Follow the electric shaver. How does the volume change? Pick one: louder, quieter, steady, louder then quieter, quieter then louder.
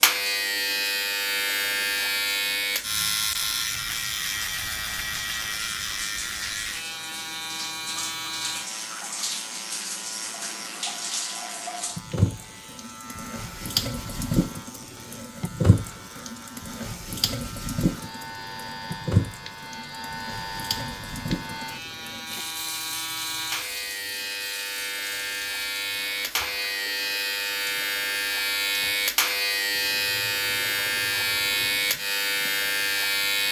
quieter then louder.